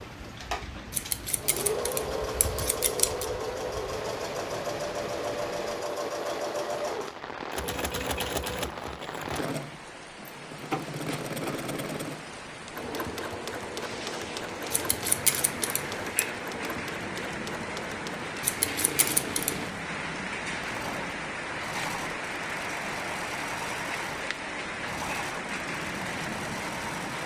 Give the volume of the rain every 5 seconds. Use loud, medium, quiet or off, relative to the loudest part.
medium, medium, medium, loud, loud, loud.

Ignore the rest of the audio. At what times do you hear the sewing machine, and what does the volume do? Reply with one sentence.
You can hear the sewing machine from 0.0 to 27.2 s, getting quieter.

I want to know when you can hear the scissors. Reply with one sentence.
You can hear the scissors from 0.9 to 3.2 s, from 14.7 to 16.2 s and from 18.4 to 19.8 s.